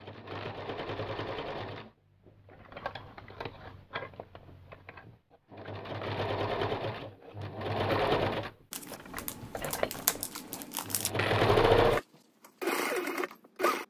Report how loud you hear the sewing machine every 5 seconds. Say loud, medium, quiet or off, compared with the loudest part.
quiet, medium, loud.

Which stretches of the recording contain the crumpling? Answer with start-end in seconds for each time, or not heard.
8.7-11.1.